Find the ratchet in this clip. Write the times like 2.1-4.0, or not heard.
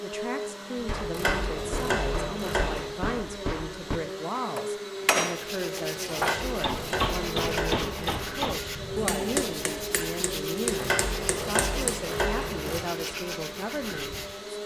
1.1-2.9, 6.2-8.2, 10.8-12.8.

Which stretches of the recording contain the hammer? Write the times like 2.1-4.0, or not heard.
0.8-12.0.